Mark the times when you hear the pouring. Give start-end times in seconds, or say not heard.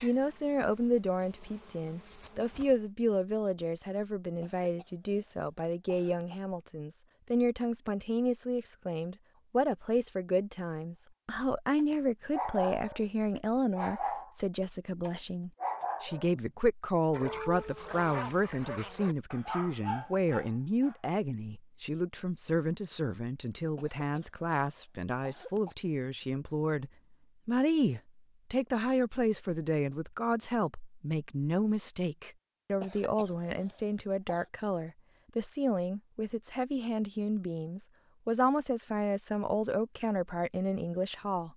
not heard.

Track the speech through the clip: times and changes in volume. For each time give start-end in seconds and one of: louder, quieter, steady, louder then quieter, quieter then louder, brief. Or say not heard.
0.0-41.5 steady.